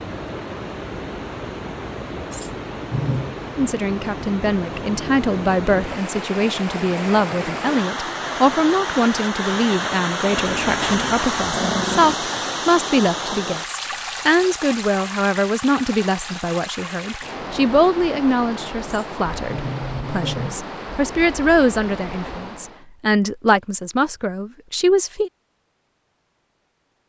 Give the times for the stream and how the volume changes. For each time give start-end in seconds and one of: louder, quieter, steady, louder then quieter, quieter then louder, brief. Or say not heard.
0.0-22.9 louder then quieter.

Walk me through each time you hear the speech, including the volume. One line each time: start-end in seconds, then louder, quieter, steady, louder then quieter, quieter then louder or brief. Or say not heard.
3.5-25.3 steady.